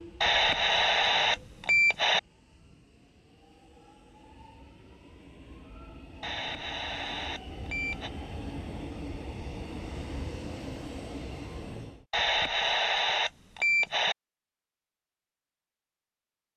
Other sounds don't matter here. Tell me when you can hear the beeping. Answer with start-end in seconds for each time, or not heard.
0.2-2.2, 6.2-8.1, 12.1-14.2.